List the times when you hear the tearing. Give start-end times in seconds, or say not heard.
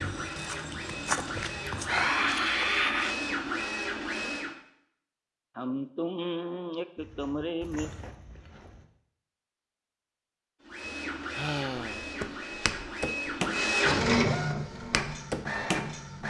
not heard.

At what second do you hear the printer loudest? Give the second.
14 s.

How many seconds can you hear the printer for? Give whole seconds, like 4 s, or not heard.
10 s.